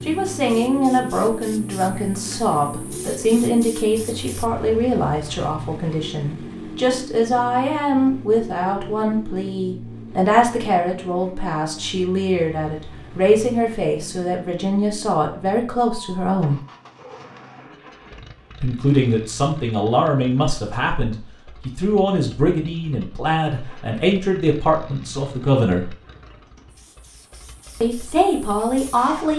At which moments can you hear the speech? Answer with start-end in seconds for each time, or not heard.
0.0-16.6, 18.6-25.9, 27.8-29.3.